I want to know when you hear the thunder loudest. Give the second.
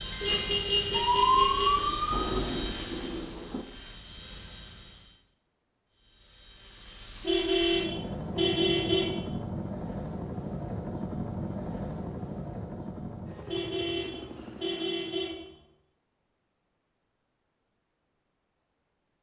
2 s.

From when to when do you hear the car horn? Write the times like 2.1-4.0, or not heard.
0.2-1.7, 7.2-9.2, 13.4-15.4.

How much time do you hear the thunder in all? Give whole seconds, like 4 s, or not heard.
2 s.